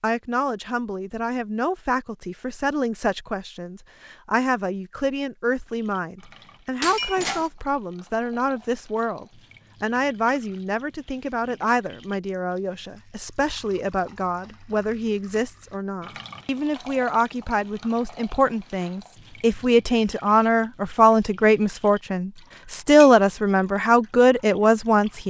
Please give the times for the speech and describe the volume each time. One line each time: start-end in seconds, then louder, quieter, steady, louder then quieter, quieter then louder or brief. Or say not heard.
0.0-25.2 louder.